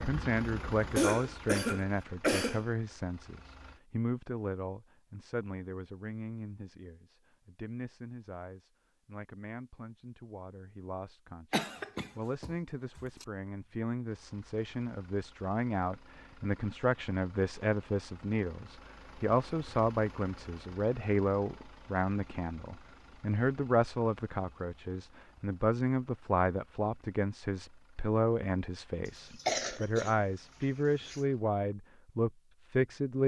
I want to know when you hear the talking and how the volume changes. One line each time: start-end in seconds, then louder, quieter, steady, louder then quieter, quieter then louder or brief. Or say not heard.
0.0-33.2 quieter then louder.